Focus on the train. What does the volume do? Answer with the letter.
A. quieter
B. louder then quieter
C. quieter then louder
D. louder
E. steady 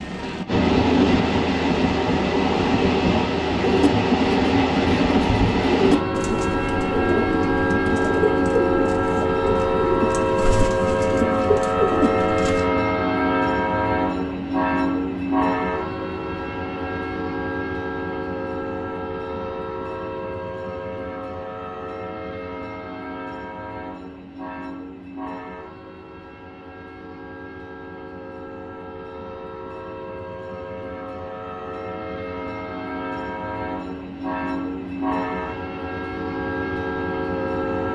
C.